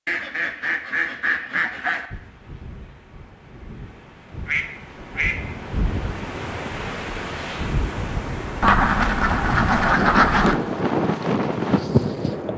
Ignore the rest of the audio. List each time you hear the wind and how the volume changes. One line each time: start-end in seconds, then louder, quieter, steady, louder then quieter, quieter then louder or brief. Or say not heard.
2.1-12.5 louder.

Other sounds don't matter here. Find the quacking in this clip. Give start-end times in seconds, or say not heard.
0.1-2.0, 4.5-5.5, 8.6-10.6.